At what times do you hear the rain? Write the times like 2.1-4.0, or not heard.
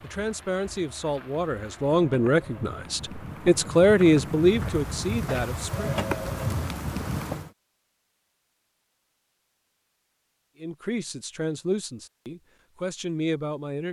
0.0-7.5.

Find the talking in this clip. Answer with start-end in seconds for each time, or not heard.
0.0-5.9, 10.6-13.8.